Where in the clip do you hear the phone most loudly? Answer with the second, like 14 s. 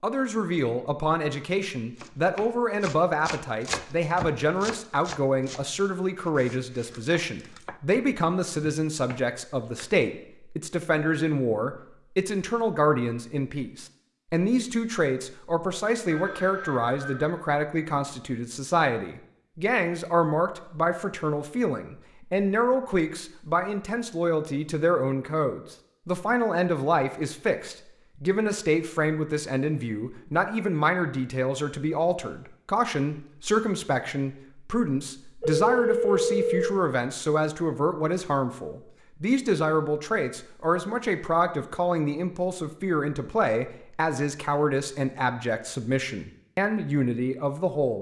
36 s.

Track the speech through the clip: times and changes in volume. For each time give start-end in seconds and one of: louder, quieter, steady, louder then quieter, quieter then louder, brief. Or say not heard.
0.0-47.9 steady.